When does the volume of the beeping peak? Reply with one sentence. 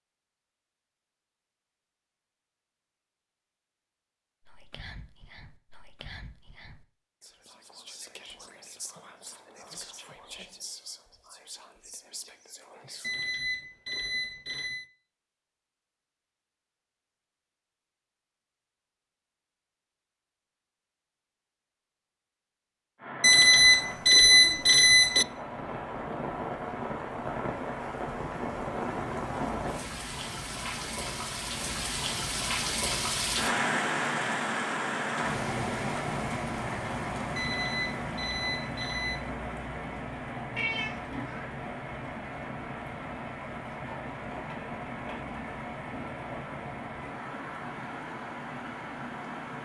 The volume of the beeping peaks at 24 seconds.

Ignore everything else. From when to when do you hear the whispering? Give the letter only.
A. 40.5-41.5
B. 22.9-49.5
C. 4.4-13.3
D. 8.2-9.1
C.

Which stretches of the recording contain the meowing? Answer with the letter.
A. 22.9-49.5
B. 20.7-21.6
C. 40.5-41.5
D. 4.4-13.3
C.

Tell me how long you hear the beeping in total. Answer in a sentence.
The beeping can be heard for 6 seconds in total.